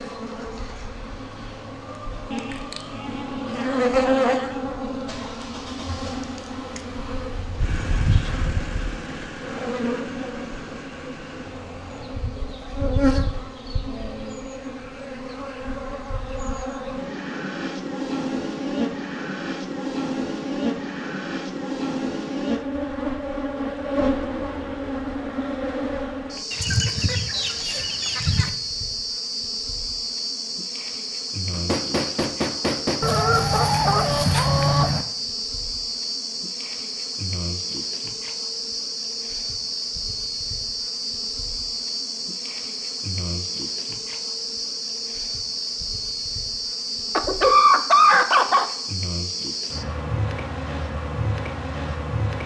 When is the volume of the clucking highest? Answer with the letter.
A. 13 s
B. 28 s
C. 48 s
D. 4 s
C.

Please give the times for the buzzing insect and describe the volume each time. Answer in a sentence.
You can hear the buzzing insect from 0.0 to 52.4 s, at a steady volume.